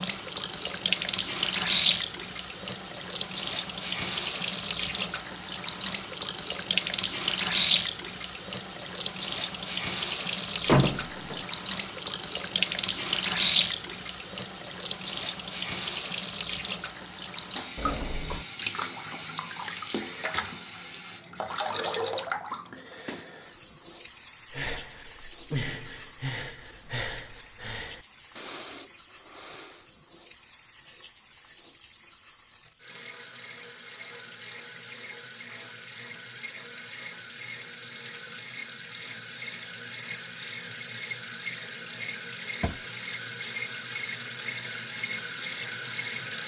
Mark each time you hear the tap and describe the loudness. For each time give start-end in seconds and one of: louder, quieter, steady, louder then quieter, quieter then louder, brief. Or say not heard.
0.0-46.4 quieter then louder.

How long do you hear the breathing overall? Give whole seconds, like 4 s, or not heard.
5 s.